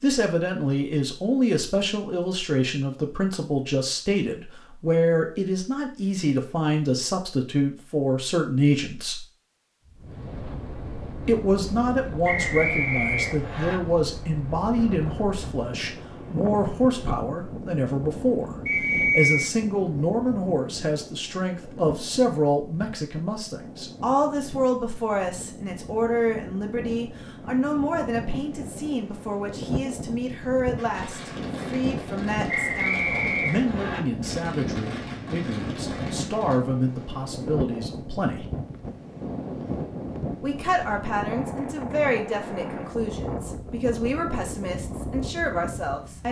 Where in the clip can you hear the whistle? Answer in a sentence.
You can hear the whistle from 12.2 to 13.8 s, from 18.6 to 19.5 s and from 32.5 to 34.0 s.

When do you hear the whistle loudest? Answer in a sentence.
The loudest moment of the whistle is at 19 seconds.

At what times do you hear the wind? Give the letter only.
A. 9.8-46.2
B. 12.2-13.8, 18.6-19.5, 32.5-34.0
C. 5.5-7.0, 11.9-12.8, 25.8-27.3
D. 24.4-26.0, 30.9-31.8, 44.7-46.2
A.